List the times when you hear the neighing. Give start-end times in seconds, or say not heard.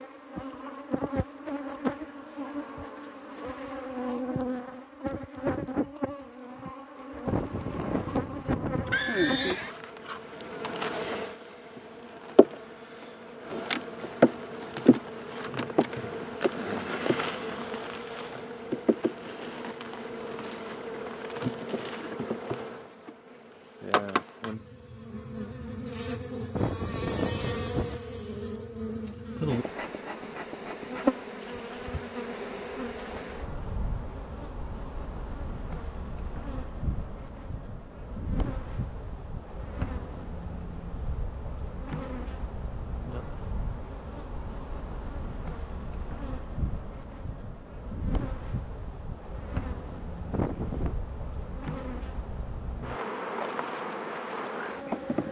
7.2-9.7, 26.5-28.0, 50.3-51.0.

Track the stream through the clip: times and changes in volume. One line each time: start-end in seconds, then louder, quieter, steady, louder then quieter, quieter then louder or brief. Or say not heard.
not heard.